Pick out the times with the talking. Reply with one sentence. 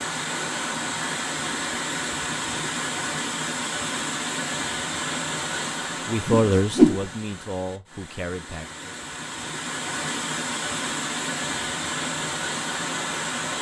You can hear the talking from 6.0 to 8.9 s.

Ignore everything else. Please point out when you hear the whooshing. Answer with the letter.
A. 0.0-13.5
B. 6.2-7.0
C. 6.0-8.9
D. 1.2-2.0
B.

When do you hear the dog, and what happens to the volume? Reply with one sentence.
You can't hear the dog here.